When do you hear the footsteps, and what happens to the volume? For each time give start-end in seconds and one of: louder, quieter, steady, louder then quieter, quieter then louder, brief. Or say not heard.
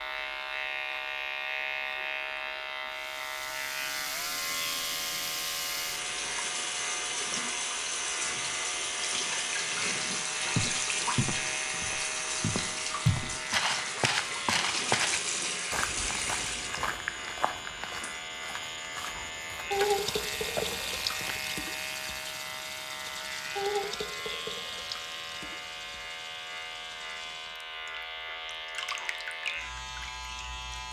10.6-21.4 louder then quieter.